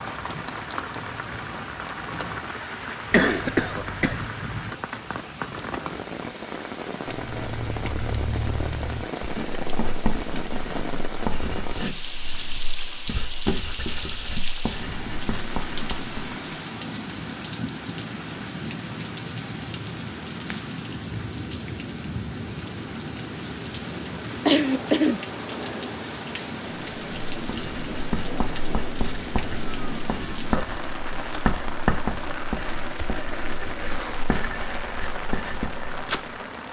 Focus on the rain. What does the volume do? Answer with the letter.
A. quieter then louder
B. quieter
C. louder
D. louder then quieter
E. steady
E.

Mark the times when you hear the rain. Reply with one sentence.
You can hear the rain from 0.0 to 36.6 s.